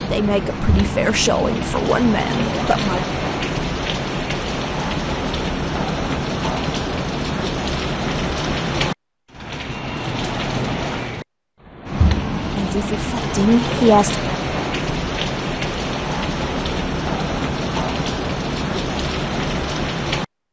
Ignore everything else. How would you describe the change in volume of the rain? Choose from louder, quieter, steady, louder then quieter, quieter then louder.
steady.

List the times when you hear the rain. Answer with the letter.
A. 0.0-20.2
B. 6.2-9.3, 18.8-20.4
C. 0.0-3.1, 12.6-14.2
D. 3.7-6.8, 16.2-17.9
A.